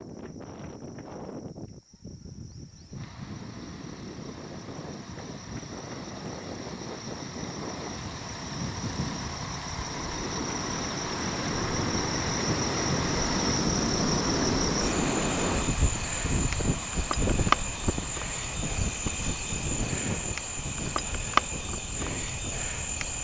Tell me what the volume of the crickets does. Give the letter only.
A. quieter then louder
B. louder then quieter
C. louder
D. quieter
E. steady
C.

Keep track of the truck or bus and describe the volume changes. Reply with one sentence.
The loudness of the truck or bus goes up, then down.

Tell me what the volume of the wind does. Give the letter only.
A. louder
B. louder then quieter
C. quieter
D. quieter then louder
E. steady
B.